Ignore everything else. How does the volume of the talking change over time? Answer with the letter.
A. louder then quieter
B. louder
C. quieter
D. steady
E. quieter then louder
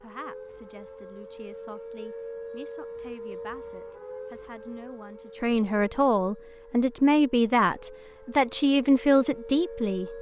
B.